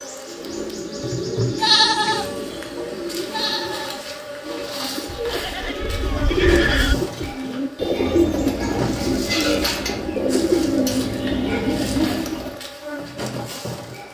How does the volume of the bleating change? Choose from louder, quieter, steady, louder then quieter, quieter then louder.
quieter then louder.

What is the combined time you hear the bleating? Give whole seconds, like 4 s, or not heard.
6 s.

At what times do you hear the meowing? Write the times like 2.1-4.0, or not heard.
not heard.